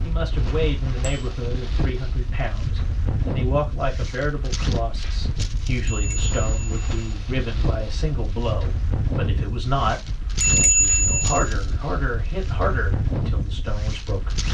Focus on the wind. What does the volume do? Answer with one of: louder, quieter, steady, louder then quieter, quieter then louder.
steady.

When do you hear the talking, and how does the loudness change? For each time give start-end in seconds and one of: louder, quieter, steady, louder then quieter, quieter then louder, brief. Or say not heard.
0.0-14.4 steady.